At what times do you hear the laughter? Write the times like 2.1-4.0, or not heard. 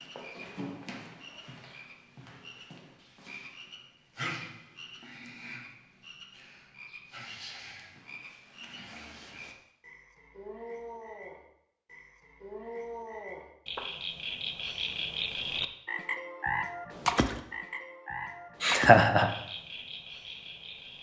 18.6-19.3.